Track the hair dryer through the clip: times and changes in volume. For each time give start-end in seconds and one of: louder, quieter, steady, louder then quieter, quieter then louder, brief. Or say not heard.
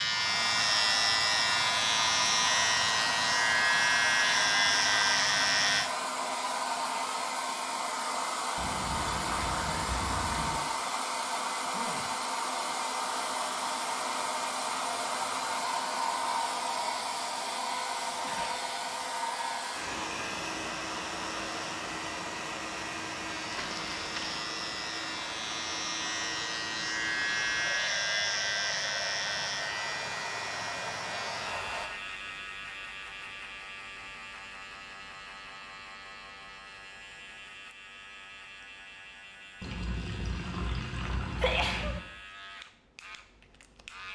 0.0-31.9 quieter.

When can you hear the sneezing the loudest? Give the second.
42 s.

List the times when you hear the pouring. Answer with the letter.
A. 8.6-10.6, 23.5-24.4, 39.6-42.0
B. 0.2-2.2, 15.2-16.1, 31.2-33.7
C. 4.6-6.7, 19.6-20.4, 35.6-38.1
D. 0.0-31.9
A.